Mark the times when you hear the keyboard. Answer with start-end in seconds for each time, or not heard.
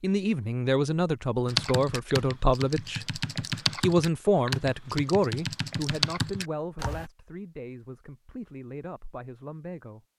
1.4-7.0.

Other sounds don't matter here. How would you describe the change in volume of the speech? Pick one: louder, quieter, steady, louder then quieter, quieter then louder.
quieter.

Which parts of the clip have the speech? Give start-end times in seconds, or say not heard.
0.0-3.2, 3.8-10.0.